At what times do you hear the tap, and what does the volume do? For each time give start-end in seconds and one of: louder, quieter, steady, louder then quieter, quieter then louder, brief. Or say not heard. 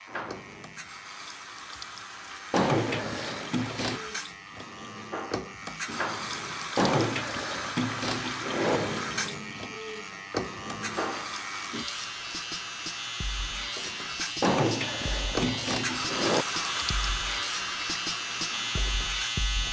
0.0-19.6 louder.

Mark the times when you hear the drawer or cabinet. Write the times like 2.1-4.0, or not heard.
2.5-4.0, 6.8-8.8, 14.4-16.4.